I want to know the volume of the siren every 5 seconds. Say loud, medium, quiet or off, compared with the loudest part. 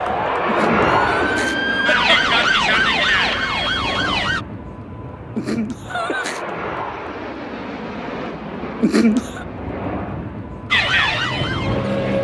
loud, off, loud.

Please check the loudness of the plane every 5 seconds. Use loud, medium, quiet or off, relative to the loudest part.
loud, medium, loud.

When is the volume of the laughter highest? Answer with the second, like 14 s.
9 s.